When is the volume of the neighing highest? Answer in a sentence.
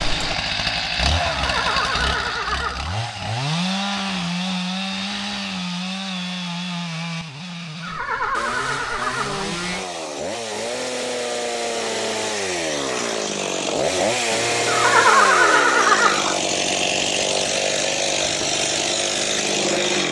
The volume of the neighing peaks at 15 seconds.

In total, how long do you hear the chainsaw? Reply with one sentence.
The chainsaw can be heard for 20 seconds in total.